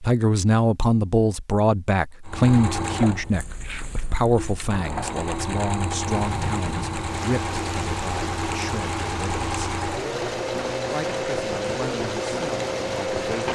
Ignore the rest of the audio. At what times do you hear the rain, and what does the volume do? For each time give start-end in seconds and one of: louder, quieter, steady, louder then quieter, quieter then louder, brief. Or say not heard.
6.0-13.5 steady.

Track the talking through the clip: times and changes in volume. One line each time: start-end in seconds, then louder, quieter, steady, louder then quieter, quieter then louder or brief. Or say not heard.
0.0-9.7 quieter
10.8-13.5 brief.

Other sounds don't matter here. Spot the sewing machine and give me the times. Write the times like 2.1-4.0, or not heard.
2.2-13.5.